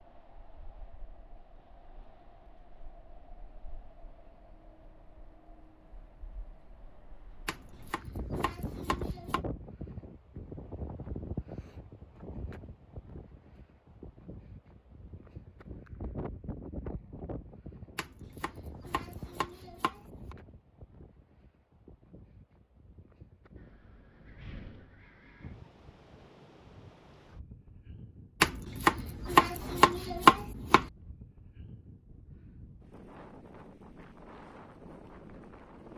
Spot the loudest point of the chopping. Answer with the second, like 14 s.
30 s.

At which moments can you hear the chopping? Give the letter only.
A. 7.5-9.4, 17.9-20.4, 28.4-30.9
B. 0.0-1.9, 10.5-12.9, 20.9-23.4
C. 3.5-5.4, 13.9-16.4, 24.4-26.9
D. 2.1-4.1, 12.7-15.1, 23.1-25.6
A.